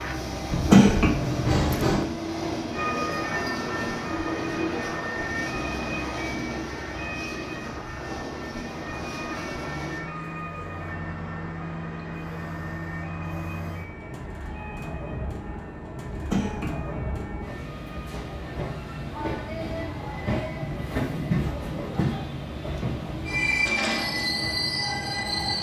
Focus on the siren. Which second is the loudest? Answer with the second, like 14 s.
3 s.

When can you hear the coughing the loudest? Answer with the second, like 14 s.
1 s.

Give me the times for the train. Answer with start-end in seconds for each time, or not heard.
0.0-25.5.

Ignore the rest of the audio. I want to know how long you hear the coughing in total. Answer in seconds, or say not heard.
2 s.